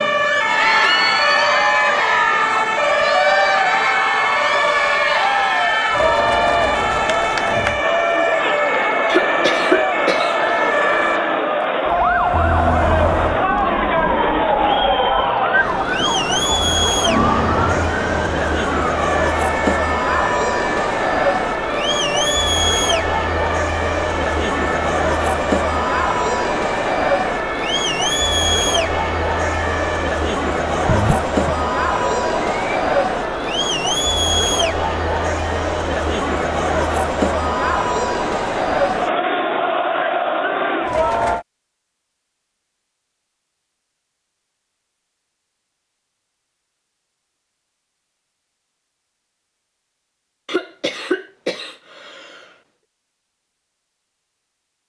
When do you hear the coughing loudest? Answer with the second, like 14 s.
10 s.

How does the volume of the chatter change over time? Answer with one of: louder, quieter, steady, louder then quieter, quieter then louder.
steady.